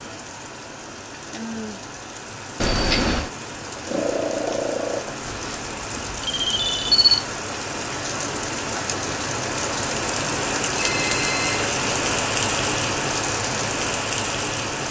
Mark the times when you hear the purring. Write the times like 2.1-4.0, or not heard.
3.9-5.3.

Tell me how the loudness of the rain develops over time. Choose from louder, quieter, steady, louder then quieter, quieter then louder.
louder.